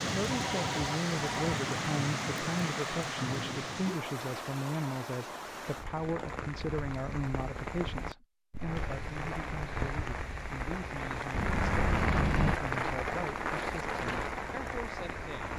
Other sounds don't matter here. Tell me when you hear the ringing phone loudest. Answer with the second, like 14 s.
12 s.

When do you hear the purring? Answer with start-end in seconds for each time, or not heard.
not heard.